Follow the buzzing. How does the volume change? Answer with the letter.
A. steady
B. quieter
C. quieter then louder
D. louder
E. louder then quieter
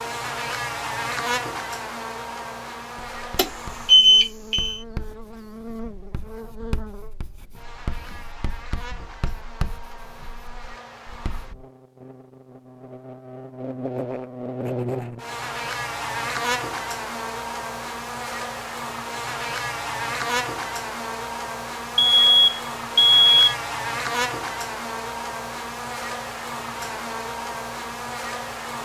C.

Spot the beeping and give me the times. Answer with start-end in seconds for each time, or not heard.
3.4-4.8, 21.9-23.6.